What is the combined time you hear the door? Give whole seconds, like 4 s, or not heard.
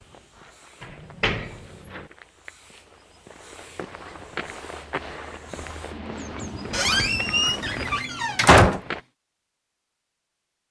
3 s.